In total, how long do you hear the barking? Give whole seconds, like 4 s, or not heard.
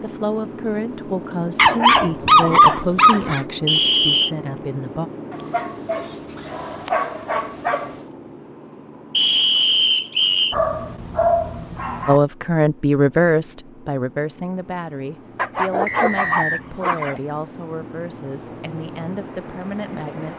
8 s.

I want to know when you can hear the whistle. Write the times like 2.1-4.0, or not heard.
3.6-4.3, 9.1-10.6, 15.8-16.6.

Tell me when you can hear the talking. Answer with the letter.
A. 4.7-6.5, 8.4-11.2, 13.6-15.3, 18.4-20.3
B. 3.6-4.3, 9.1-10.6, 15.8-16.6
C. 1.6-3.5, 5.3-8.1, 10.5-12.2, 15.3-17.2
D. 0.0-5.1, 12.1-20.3
D.